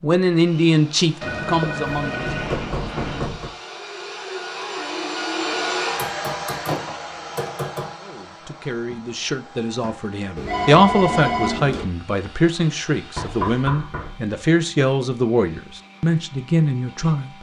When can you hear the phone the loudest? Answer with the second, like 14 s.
11 s.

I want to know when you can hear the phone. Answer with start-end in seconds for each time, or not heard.
1.2-3.2, 10.3-11.8.